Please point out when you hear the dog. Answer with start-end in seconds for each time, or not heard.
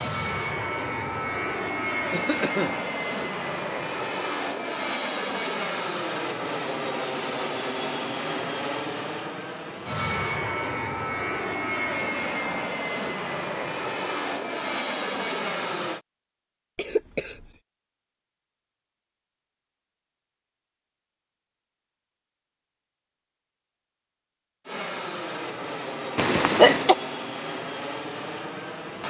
not heard.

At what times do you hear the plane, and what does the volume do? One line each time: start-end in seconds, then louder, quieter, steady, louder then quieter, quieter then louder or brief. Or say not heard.
0.0-16.0 steady
24.6-29.0 steady.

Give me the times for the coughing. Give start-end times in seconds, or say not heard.
2.1-2.8, 16.8-17.5, 26.1-26.9.